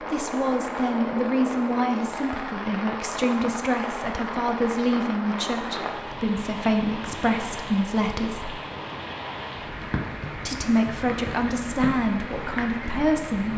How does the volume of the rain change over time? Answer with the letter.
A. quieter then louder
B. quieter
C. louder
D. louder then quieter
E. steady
E.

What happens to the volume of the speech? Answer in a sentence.
The loudness of the speech stays about the same.